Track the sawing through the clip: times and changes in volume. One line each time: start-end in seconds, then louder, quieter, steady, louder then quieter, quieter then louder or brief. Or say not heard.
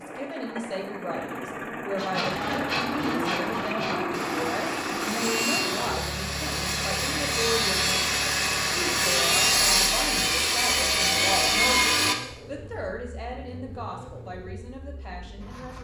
1.9-12.2 louder.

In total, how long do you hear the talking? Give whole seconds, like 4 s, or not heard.
16 s.